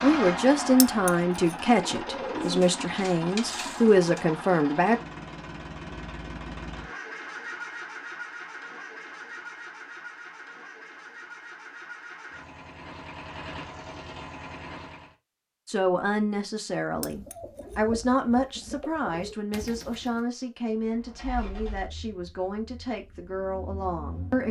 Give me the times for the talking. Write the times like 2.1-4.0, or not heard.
0.0-5.0, 15.7-24.4.